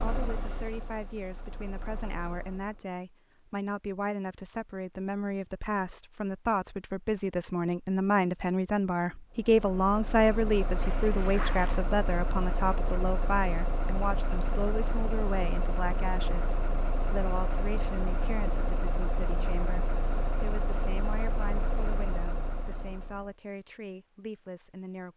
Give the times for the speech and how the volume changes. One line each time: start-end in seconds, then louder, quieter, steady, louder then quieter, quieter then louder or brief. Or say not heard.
0.0-25.1 louder then quieter.